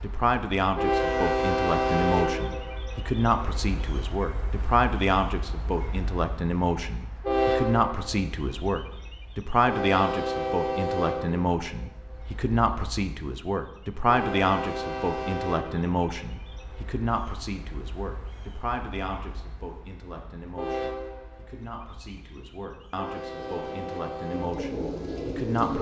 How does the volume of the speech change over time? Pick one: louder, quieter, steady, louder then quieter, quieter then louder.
quieter.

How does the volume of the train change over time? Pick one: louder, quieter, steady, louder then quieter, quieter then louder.
quieter.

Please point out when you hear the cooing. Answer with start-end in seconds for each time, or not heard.
23.4-25.7.